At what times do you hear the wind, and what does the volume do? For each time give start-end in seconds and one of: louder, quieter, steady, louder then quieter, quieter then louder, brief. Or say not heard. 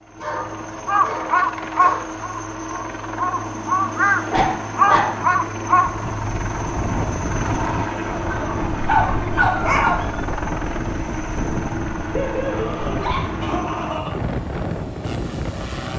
6.0-15.9 steady.